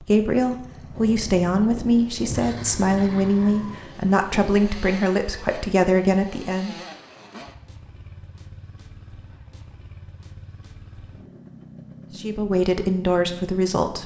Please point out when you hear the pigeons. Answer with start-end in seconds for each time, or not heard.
not heard.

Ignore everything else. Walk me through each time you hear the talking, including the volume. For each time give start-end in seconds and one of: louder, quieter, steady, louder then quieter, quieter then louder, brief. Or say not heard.
0.0-6.8 steady
12.2-14.0 brief.